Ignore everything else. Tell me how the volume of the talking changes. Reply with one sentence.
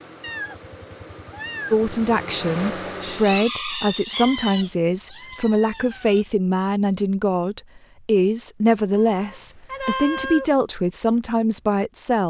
The volume of the talking stays about the same.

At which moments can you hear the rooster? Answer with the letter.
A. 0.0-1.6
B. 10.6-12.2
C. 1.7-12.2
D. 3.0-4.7
D.